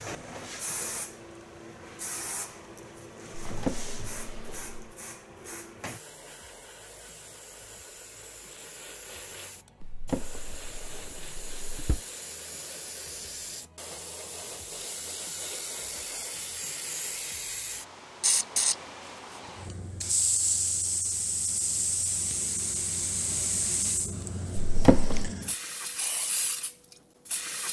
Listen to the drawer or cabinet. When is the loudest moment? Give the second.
25 s.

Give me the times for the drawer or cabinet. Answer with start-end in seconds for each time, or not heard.
3.5-4.8, 9.8-12.0, 24.6-25.3.